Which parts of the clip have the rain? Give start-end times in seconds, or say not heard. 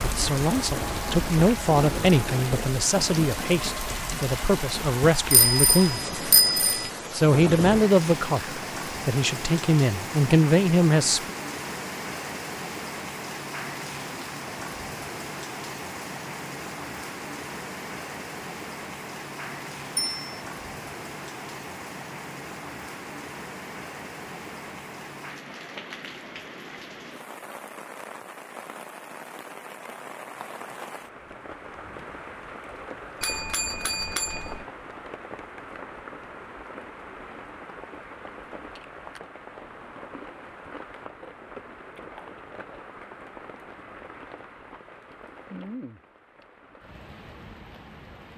0.0-48.3.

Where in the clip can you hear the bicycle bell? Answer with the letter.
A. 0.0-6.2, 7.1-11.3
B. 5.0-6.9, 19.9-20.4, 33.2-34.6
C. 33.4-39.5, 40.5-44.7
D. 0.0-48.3
B.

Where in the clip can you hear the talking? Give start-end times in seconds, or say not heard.
0.0-6.2, 7.1-11.3.